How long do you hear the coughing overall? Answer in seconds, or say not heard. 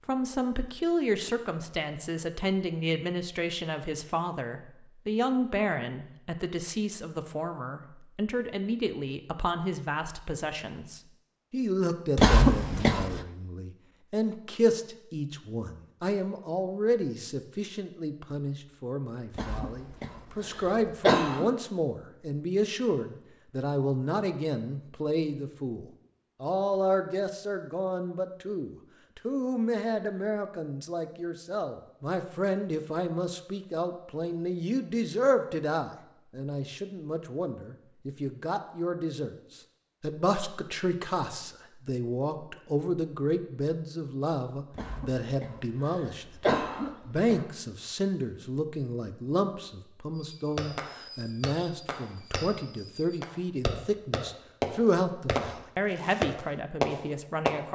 6 s.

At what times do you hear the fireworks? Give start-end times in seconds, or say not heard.
50.1-57.5.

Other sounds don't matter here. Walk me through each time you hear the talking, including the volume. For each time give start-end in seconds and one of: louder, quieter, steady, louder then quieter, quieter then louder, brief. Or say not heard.
0.1-57.6 steady.